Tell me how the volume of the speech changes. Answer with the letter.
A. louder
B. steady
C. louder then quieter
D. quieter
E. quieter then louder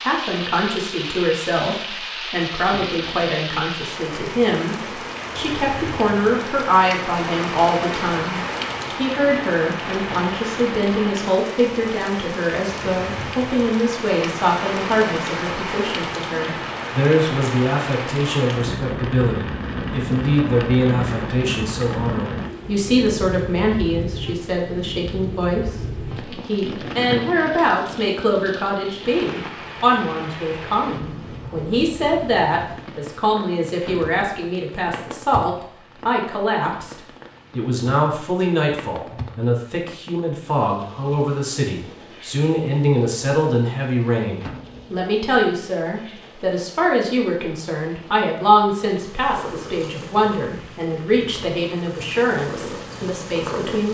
B.